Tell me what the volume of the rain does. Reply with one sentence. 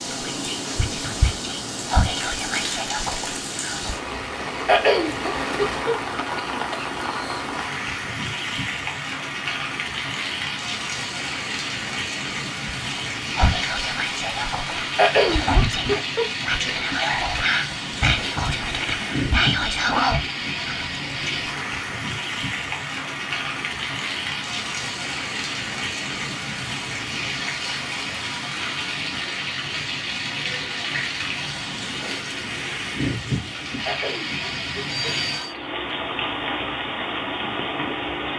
The volume of the rain stays about the same.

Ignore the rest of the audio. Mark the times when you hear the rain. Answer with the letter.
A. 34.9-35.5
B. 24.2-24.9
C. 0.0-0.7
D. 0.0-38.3
D.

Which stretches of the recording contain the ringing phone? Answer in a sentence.
The ringing phone can be heard from 34.9 to 35.5 s.